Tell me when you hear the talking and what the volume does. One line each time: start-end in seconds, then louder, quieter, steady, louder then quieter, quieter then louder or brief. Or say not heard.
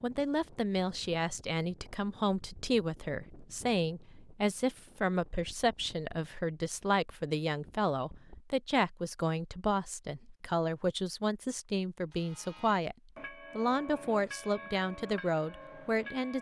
0.0-12.9 steady
13.6-16.3 brief.